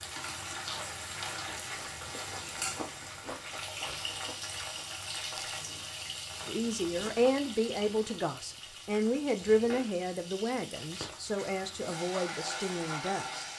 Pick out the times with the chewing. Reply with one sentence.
The chewing can be heard from 0.5 to 7.2 s.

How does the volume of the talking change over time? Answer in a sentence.
The volume of the talking goes down.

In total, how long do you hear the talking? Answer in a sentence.
You can hear the talking for 7 seconds altogether.